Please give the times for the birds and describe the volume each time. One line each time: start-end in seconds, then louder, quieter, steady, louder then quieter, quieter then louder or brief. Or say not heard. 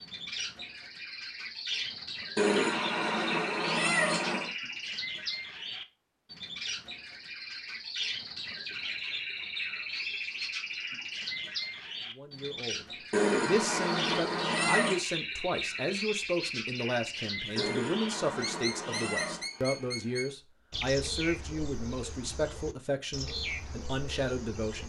0.0-24.8 steady.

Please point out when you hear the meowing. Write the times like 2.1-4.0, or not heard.
2.4-4.5, 13.1-15.0, 17.6-19.5.